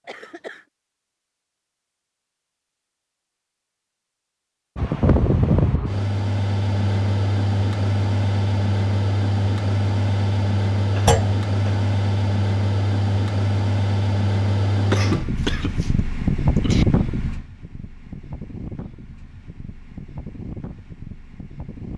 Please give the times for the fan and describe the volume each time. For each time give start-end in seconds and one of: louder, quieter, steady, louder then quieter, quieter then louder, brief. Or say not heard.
4.8-21.9 quieter.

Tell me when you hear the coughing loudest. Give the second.
15 s.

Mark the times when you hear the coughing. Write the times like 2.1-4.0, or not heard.
0.1-0.7, 10.9-11.8, 14.8-16.9.